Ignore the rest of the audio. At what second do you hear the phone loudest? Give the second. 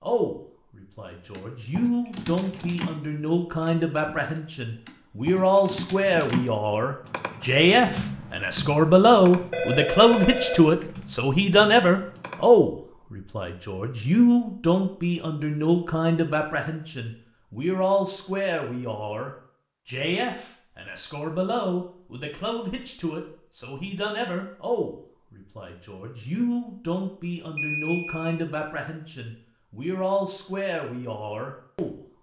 10 s.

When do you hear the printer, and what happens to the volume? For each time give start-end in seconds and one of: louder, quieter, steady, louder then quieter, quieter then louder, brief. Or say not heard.
not heard.